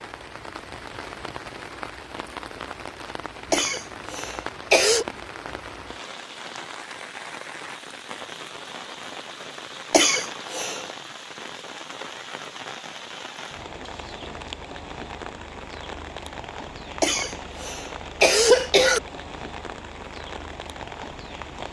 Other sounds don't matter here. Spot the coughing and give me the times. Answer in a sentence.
The coughing can be heard from 3.5 to 5.0 s, from 9.9 to 10.8 s and from 17.0 to 19.0 s.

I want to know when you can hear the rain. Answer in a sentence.
You can hear the rain from 0.0 to 21.6 s.